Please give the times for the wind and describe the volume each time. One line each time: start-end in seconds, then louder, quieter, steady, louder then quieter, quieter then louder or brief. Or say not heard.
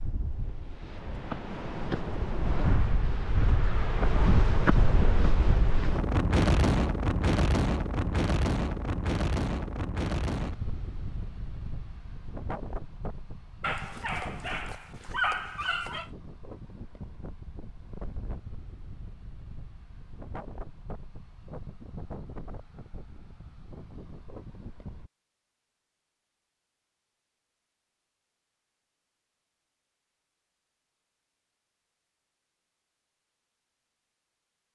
0.0-25.1 quieter.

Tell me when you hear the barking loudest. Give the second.
15 s.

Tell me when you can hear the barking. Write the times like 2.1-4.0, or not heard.
13.6-16.1.